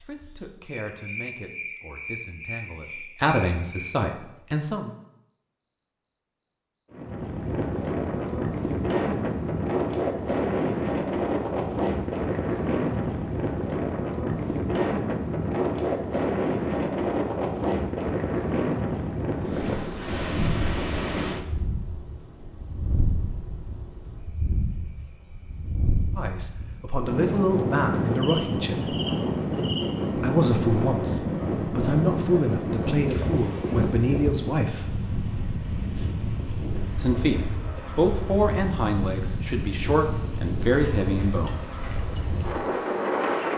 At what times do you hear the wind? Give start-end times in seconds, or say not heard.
6.9-43.5.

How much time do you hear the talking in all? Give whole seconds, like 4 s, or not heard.
17 s.